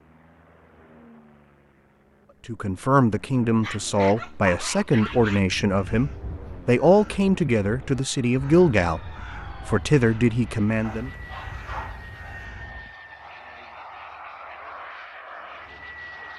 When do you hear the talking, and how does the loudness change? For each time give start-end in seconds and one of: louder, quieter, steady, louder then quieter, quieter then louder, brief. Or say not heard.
2.5-11.1 steady.